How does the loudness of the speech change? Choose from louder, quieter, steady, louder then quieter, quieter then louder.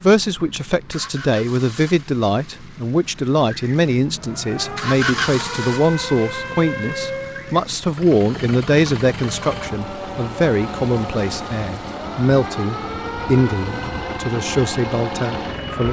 steady.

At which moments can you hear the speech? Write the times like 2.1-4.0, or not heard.
0.0-15.8.